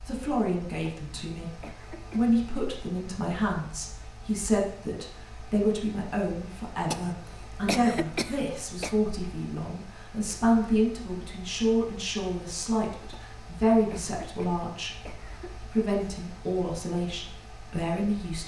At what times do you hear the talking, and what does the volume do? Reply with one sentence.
The talking can be heard from 0.1 to 18.4 s, at a steady volume.